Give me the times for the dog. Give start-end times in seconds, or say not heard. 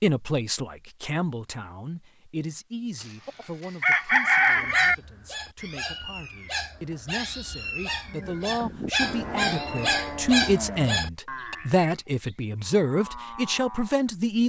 4.5-11.6.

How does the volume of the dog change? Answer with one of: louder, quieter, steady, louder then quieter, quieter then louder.
louder.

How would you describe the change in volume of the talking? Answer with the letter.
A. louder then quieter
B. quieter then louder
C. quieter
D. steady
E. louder
B.